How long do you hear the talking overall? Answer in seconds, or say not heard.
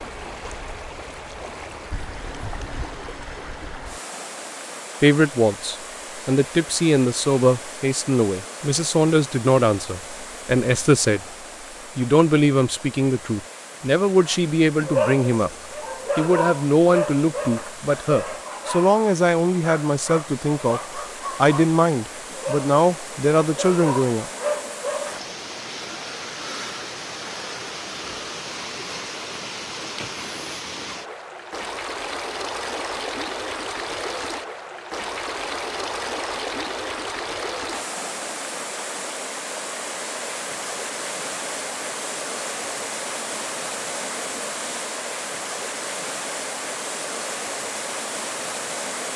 18 s.